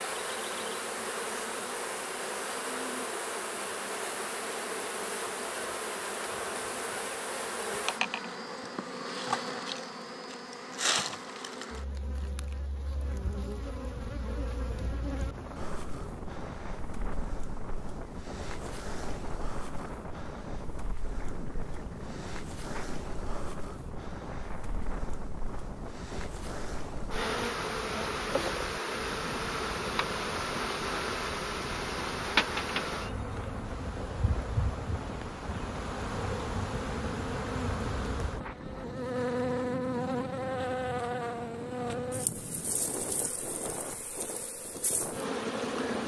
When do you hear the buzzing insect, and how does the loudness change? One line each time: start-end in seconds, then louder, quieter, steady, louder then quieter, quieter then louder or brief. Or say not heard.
0.0-46.0 quieter then louder.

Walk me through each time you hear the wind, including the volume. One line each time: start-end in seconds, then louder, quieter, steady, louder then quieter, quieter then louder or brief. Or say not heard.
13.9-46.0 steady.